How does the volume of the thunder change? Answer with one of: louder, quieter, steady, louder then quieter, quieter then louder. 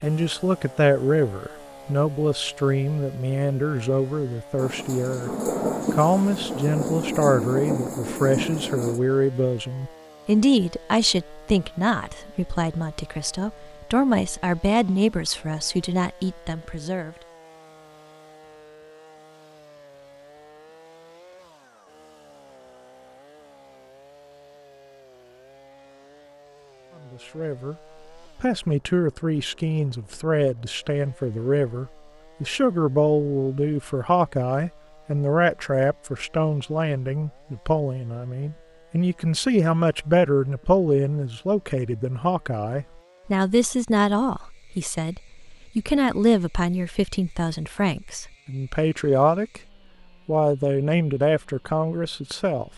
steady.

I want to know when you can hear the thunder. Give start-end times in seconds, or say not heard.
4.5-9.0.